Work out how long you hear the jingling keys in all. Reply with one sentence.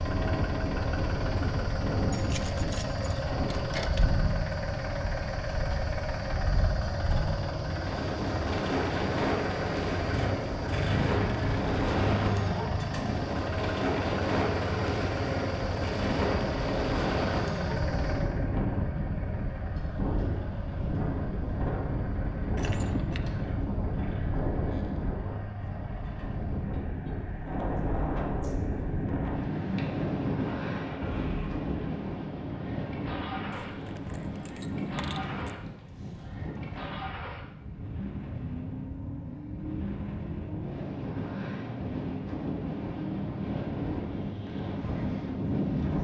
You can hear the jingling keys for 5 seconds altogether.